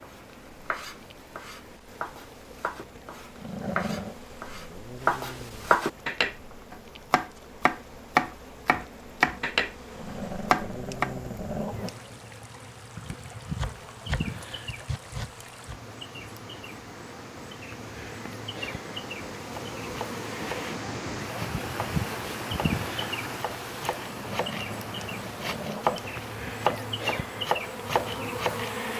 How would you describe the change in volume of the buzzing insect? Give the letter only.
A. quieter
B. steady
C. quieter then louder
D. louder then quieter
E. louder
E.